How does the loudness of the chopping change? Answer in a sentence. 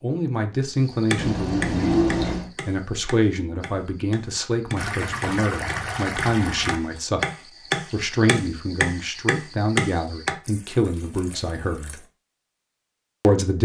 The loudness of the chopping goes down, then up.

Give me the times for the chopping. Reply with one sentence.
You can hear the chopping from 0.8 to 10.3 s.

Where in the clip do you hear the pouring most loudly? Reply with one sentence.
The volume of the pouring peaks at 2 seconds.